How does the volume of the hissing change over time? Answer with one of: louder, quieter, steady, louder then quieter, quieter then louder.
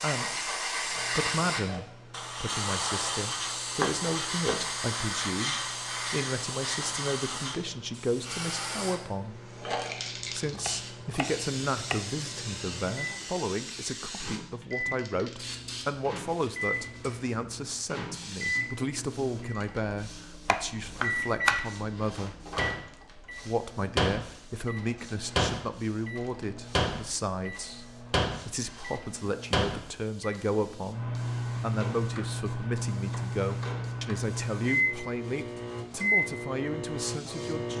quieter.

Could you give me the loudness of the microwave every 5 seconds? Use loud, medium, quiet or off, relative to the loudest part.
quiet, quiet, medium, medium, loud, loud, loud, loud.